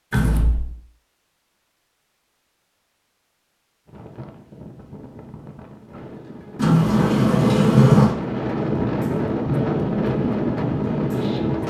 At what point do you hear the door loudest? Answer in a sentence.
The loudest moment of the door is at 8 seconds.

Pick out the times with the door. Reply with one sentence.
The door can be heard from 0.1 to 0.7 s and from 6.5 to 8.2 s.